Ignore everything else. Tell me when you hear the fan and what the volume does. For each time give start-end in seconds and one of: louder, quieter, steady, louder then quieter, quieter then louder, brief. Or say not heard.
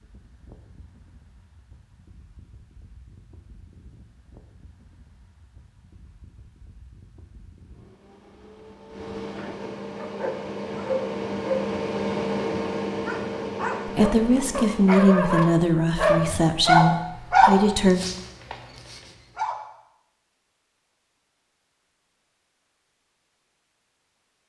0.0-15.0 louder.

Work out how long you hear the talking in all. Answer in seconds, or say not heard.
4 s.